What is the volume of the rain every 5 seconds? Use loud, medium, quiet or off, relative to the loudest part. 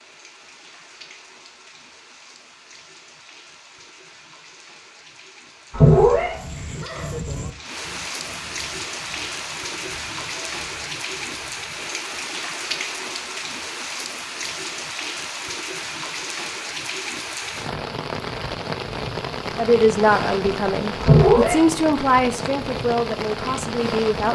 quiet, medium, loud, loud, loud.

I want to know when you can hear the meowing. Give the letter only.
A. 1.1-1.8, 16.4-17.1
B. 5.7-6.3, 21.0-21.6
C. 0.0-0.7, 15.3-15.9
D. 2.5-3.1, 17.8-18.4
B.